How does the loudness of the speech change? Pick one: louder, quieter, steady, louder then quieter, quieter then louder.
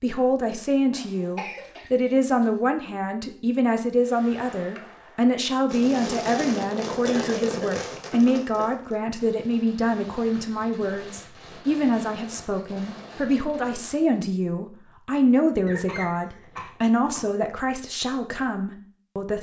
steady.